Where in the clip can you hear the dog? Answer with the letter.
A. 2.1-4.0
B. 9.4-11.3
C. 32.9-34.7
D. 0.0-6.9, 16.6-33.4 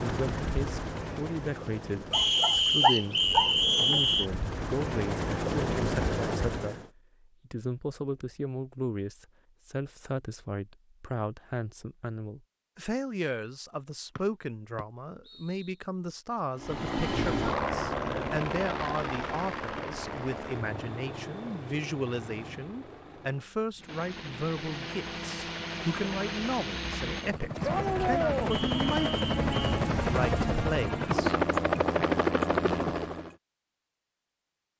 A.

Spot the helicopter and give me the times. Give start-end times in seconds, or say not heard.
0.0-6.9, 16.6-33.4.